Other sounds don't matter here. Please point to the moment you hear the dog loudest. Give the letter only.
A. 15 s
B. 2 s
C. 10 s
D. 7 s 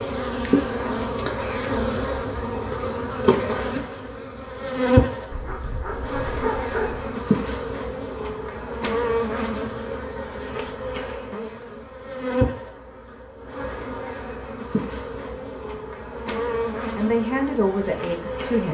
D.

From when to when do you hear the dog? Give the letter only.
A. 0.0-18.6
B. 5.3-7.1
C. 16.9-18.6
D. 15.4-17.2
B.